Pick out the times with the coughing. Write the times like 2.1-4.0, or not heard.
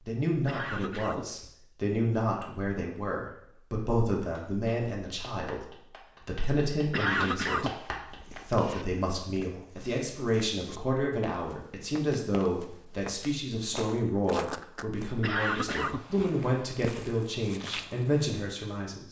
0.5-1.6, 6.9-8.8, 15.2-17.1.